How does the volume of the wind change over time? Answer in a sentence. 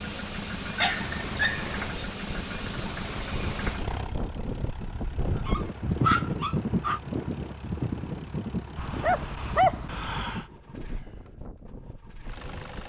The volume of the wind goes up, then down.